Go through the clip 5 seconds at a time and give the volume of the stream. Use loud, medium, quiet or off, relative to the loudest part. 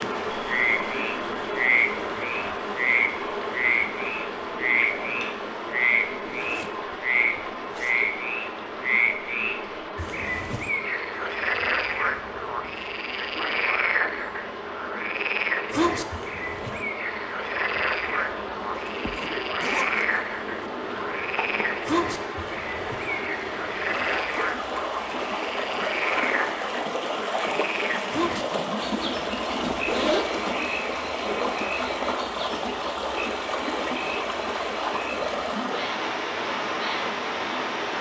loud, medium, medium, medium, loud, loud, loud, loud.